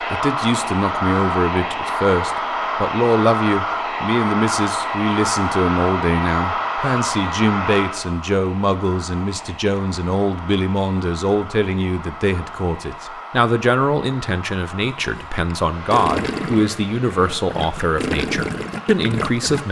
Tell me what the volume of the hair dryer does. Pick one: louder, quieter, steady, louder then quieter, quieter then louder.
quieter.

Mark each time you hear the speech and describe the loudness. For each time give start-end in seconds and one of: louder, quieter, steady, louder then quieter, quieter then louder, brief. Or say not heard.
0.1-19.6 steady.